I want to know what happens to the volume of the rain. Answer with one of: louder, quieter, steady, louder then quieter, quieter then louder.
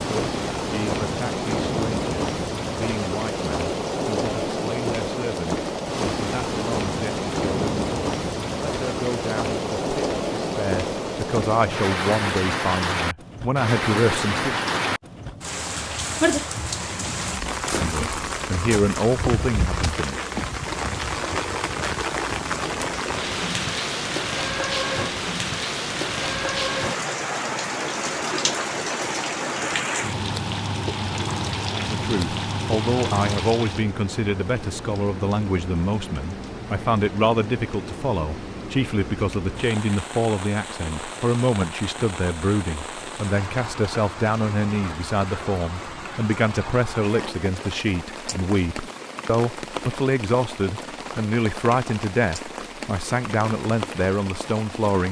quieter.